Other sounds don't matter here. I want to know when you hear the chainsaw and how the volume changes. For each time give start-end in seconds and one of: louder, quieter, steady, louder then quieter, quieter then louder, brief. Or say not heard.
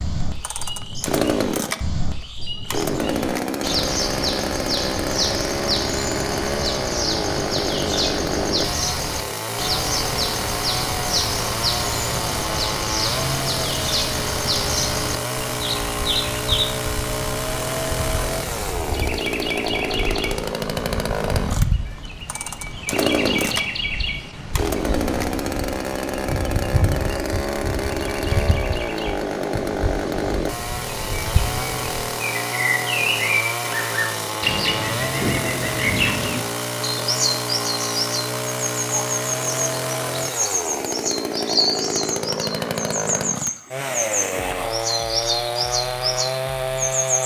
0.0-47.2 steady.